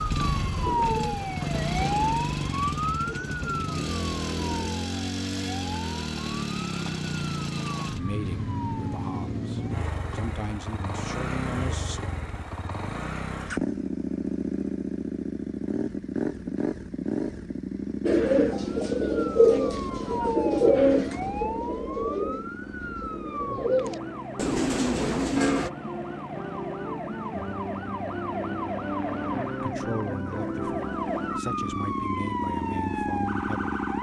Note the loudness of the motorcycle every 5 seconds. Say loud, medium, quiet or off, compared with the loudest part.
loud, loud, loud, loud, medium, medium, loud.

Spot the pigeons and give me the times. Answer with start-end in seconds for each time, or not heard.
0.2-4.7, 18.1-25.7.